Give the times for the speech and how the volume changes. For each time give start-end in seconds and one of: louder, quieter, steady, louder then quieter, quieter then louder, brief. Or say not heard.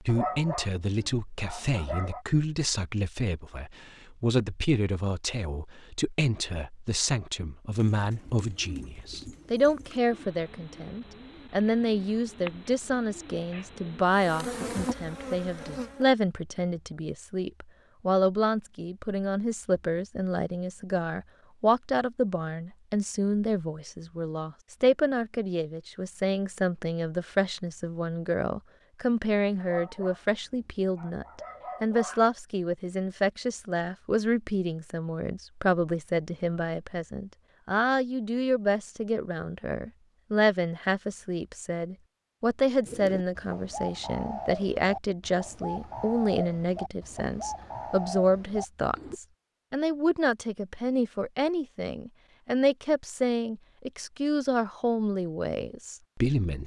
0.0-56.6 steady.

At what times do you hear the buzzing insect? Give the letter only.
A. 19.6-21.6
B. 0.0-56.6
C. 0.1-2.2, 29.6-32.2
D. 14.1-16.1
D.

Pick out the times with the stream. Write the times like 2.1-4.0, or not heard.
not heard.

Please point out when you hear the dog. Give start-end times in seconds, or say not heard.
0.1-2.2, 29.6-32.2.